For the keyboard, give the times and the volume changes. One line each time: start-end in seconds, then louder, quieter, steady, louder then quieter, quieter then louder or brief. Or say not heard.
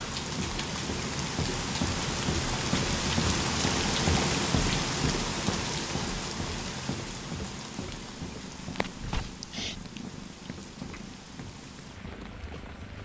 not heard.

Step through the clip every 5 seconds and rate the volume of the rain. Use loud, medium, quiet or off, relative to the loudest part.
loud, medium, quiet.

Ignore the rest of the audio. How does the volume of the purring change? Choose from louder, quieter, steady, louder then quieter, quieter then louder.
quieter.